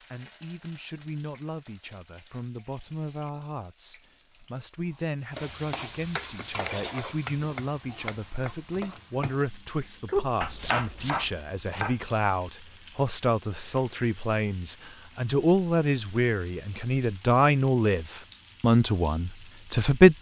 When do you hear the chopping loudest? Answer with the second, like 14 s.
10 s.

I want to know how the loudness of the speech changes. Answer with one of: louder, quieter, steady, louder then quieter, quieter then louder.
louder.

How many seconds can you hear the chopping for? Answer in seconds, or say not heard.
6 s.